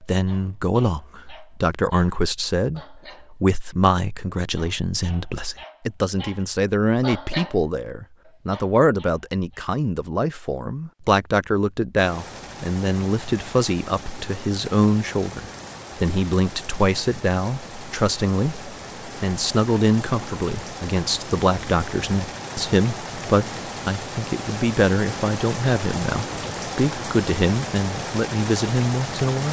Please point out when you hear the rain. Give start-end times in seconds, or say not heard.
11.9-29.4.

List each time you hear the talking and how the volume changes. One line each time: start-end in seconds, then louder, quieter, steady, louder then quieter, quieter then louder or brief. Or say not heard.
0.0-29.4 steady.